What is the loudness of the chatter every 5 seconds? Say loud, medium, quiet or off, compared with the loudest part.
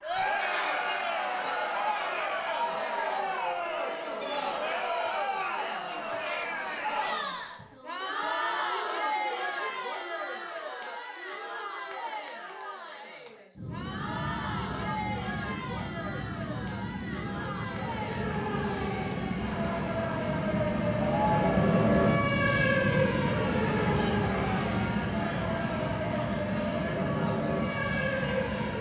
loud, loud, medium, medium, medium, medium.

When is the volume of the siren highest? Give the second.
22 s.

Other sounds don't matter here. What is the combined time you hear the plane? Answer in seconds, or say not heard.
15 s.